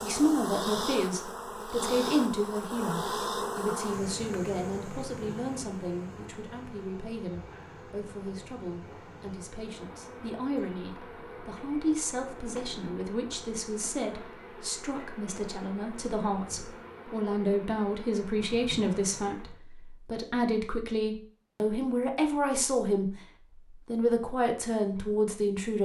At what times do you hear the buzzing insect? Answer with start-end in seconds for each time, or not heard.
0.0-19.6.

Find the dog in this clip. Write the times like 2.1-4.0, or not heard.
not heard.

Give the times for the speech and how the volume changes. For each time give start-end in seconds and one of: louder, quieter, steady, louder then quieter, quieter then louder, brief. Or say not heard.
0.0-23.1 quieter then louder
23.9-25.7 brief.